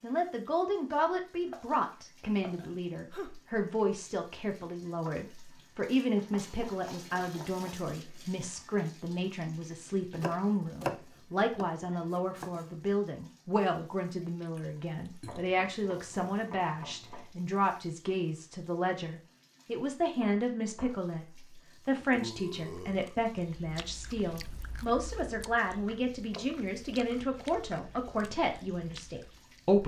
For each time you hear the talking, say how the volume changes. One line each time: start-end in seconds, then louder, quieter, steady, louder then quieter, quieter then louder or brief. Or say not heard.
0.0-29.8 steady.